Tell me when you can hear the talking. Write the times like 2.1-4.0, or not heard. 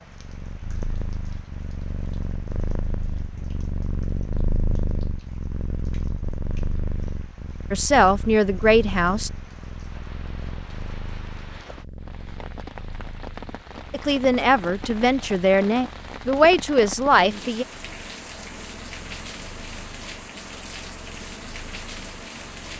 7.7-9.3, 13.9-17.6.